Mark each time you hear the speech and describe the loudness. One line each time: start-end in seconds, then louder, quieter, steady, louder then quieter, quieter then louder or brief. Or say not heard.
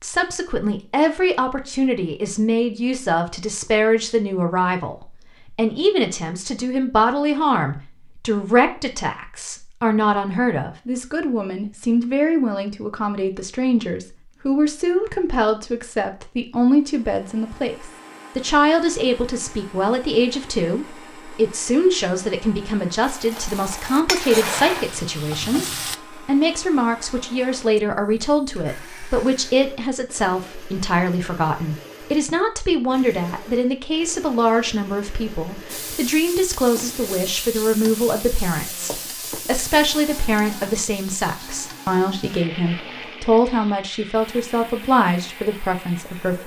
0.0-46.4 steady.